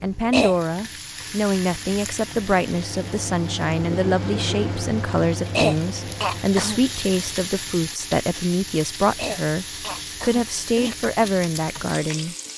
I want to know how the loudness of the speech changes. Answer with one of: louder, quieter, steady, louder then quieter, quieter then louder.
steady.